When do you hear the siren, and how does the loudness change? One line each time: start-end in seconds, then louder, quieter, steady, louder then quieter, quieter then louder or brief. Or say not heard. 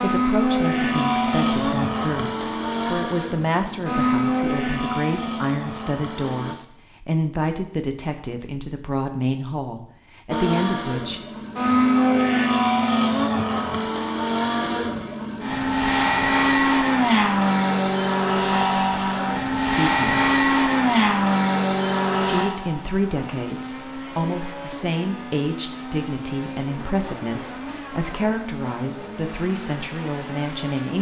not heard.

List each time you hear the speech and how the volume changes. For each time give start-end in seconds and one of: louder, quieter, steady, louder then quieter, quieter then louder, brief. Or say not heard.
0.0-11.2 steady
19.5-20.3 brief
22.2-30.9 steady.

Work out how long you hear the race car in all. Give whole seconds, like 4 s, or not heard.
27 s.